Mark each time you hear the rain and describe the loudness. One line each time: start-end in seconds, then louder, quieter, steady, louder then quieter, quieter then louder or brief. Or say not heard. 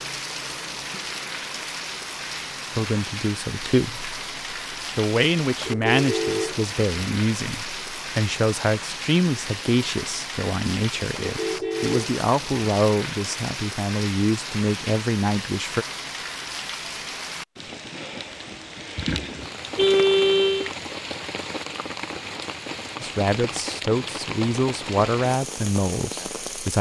0.0-26.7 steady.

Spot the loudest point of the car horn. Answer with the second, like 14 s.
20 s.